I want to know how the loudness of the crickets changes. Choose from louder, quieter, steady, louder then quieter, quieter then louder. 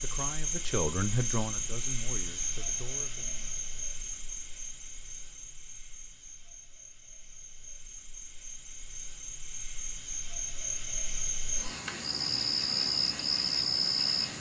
quieter then louder.